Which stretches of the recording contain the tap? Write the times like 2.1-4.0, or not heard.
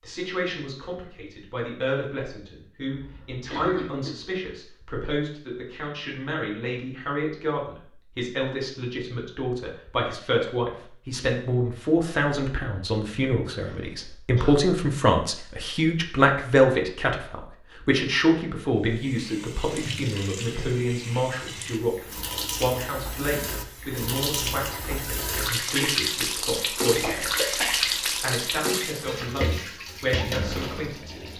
18.8-31.3.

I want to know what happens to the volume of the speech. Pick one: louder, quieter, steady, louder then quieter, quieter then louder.
louder then quieter.